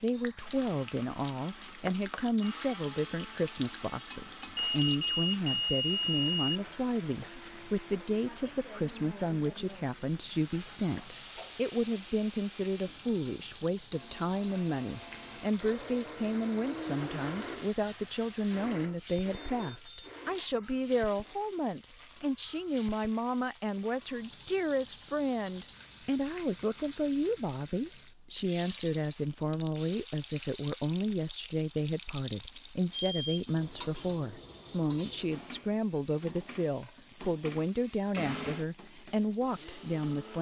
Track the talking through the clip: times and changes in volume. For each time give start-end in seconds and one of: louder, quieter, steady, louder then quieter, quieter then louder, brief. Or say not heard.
0.0-40.3 steady.